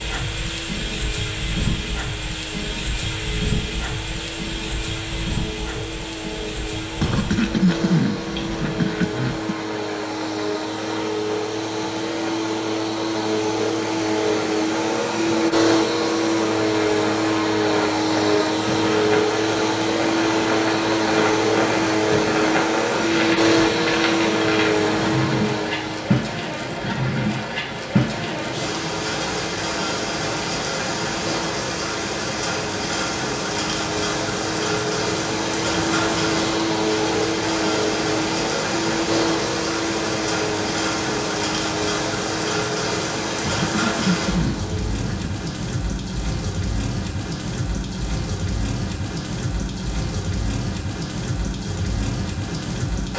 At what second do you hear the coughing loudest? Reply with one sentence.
The loudest moment of the coughing is at 8 seconds.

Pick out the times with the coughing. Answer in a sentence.
You can hear the coughing from 7.0 to 9.7 s and from 43.5 to 45.4 s.